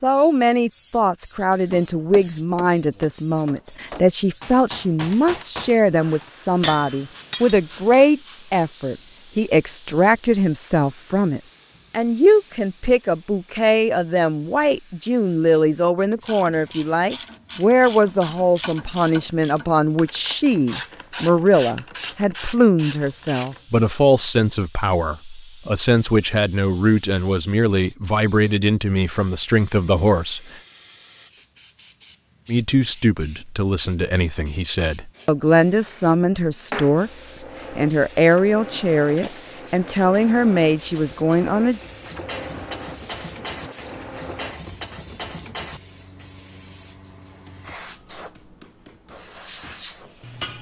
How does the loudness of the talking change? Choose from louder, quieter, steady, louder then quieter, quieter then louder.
steady.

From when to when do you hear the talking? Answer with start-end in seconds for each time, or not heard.
0.0-30.4, 32.5-41.8.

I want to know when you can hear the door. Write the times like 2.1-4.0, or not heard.
not heard.